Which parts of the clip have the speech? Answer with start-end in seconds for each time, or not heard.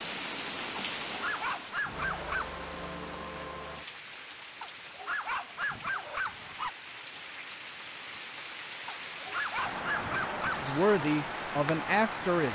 10.6-12.5.